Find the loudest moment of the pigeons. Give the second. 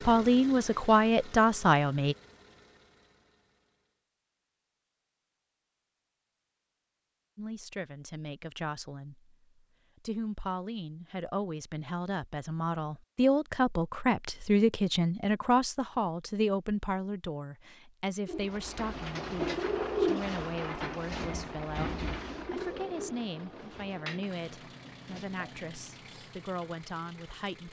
20 s.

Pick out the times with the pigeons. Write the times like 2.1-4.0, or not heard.
18.2-25.5.